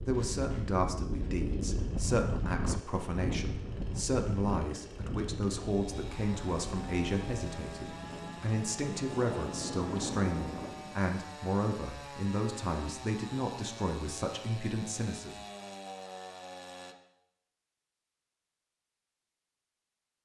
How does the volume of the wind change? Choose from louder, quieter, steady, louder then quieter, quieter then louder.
quieter then louder.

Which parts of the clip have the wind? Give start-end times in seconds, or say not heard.
0.0-11.0.